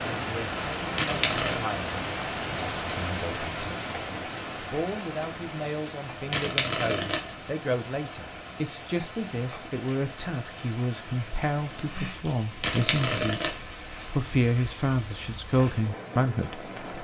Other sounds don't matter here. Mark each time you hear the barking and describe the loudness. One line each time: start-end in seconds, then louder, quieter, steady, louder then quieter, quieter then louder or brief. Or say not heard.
not heard.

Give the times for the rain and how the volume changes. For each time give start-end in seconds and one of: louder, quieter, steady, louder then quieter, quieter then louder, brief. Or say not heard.
0.0-16.9 quieter.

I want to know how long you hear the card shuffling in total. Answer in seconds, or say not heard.
3 s.